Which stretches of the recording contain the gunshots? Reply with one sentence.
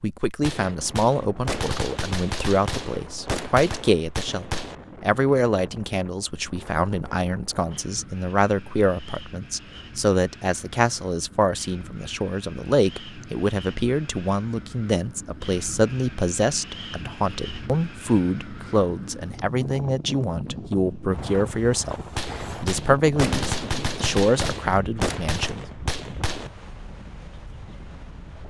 You can hear the gunshots from 0.4 to 4.8 s and from 22.1 to 26.5 s.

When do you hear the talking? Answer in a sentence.
You can hear the talking from 0.0 to 22.0 s and from 22.6 to 25.6 s.